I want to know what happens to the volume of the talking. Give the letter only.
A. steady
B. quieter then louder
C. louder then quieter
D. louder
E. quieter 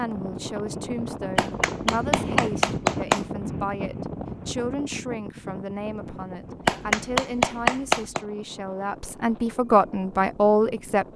D.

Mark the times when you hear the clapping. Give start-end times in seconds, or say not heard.
1.4-3.2, 6.7-8.2.